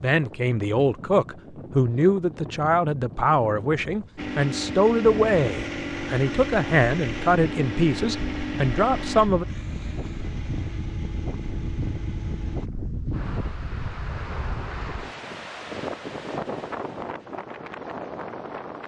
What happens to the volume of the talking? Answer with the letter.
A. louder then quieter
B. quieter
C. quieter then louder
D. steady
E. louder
D.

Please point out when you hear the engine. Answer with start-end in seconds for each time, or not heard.
4.2-12.7.